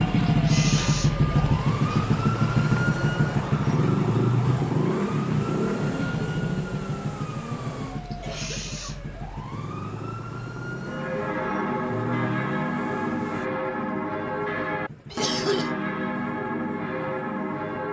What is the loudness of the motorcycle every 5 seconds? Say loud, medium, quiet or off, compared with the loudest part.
loud, medium, quiet, quiet.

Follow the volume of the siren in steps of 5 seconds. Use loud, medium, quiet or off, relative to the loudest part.
loud, medium, medium, off.